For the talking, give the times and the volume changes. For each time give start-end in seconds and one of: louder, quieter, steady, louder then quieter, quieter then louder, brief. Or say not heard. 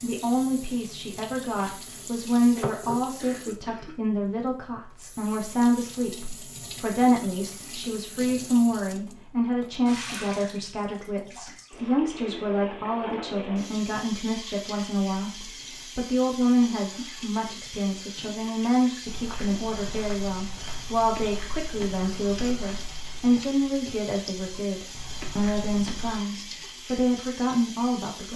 0.0-28.3 steady.